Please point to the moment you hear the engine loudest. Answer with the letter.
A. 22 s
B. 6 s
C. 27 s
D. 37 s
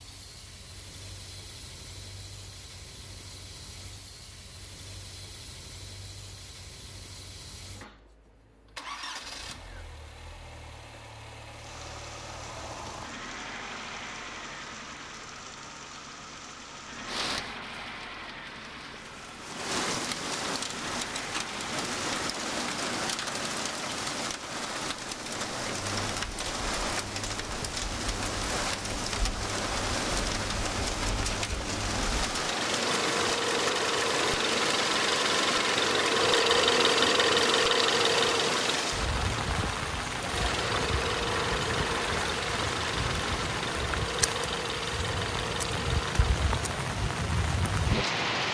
D.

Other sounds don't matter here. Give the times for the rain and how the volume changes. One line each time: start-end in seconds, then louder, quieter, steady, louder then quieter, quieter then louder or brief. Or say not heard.
11.5-48.4 louder.